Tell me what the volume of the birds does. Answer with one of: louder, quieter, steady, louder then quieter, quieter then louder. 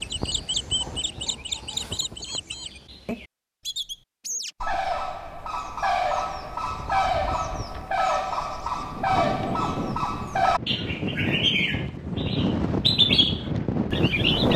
louder.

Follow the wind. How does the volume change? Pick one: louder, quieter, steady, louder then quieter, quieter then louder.
louder.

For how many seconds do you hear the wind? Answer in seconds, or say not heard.
8 s.